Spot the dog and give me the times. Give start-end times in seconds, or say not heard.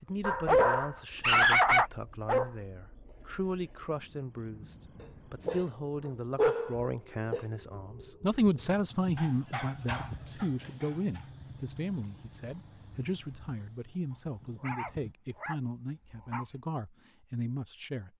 0.2-2.5, 5.0-7.5, 9.2-11.2, 14.1-16.4.